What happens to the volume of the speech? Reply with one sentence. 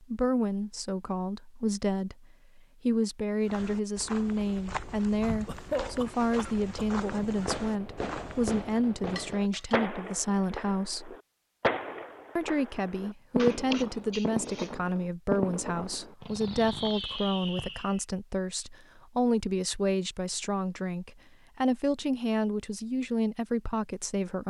The volume of the speech stays about the same.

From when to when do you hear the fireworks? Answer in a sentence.
The fireworks can be heard from 7.2 to 18.0 s.